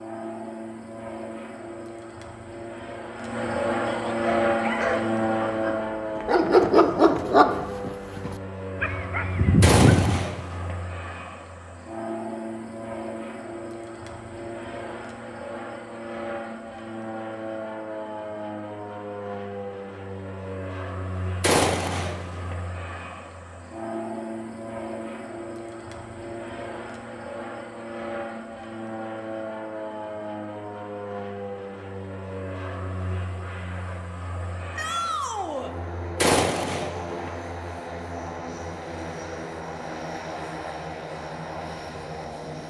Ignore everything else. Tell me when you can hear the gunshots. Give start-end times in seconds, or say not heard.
9.6-10.8, 21.4-22.6, 36.1-37.3.